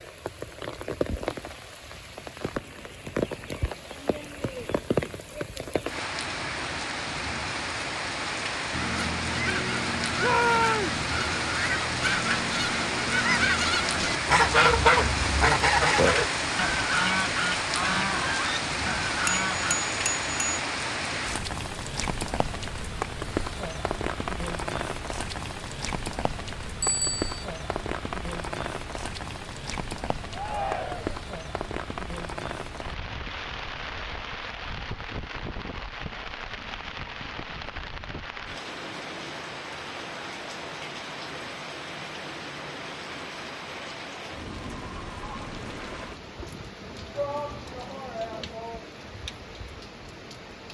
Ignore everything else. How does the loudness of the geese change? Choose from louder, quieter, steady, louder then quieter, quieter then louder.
louder then quieter.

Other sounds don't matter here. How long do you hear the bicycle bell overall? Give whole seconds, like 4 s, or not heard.
2 s.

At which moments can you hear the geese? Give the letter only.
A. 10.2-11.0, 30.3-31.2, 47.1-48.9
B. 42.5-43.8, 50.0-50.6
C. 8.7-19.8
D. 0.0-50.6
C.